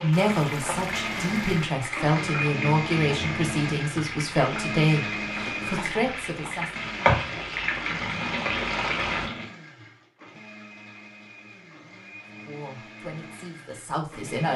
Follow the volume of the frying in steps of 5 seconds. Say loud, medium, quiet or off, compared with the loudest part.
medium, loud, off.